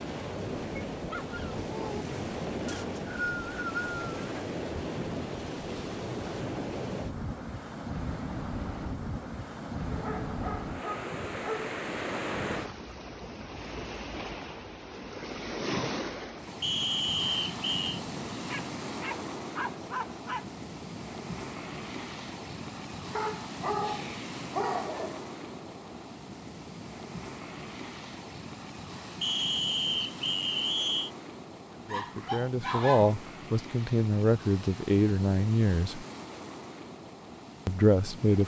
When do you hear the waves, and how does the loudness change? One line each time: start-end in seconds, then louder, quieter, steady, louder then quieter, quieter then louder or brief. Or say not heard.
0.0-38.4 quieter.